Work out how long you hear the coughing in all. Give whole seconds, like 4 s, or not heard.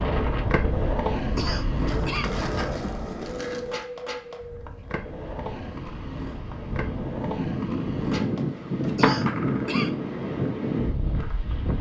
2 s.